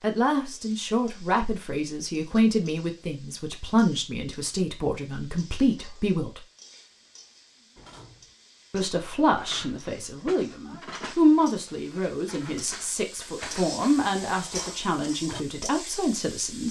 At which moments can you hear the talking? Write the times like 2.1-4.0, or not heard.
0.0-6.4, 8.7-16.6.